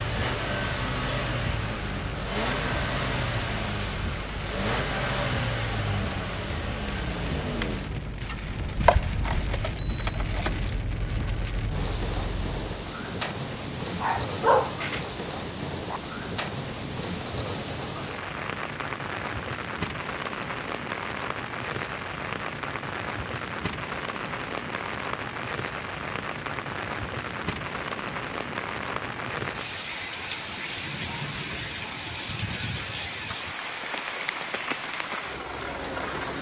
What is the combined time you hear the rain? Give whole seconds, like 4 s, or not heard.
36 s.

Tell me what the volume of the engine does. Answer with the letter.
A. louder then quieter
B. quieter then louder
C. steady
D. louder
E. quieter
E.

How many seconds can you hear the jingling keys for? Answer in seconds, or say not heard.
2 s.